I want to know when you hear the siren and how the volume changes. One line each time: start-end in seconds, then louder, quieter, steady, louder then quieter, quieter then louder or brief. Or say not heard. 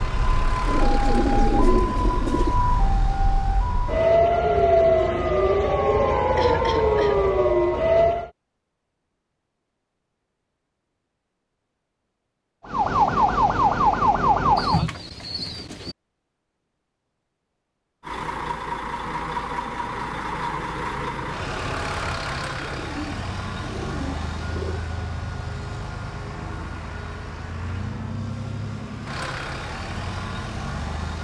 0.0-8.3 louder
12.7-14.9 brief.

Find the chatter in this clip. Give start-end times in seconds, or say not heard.
not heard.